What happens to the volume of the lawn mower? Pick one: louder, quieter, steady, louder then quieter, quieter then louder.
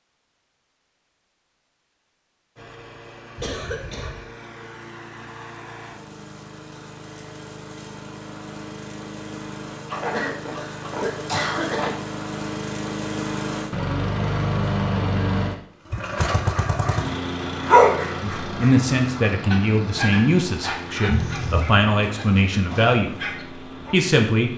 louder then quieter.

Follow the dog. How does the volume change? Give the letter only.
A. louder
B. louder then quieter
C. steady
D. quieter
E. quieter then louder
D.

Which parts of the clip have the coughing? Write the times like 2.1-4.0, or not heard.
3.4-4.2, 9.9-11.9, 21.1-21.8.